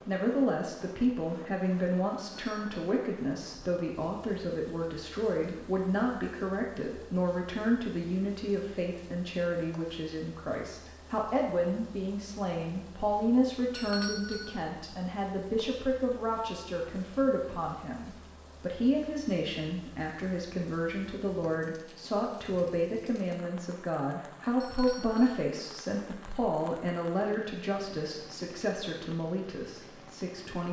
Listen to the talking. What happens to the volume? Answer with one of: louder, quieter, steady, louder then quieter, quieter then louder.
steady.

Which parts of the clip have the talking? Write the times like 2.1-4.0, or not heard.
0.0-30.6.